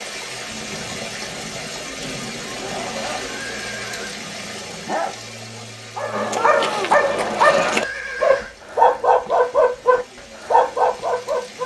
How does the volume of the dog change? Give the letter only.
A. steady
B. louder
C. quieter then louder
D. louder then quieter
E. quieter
B.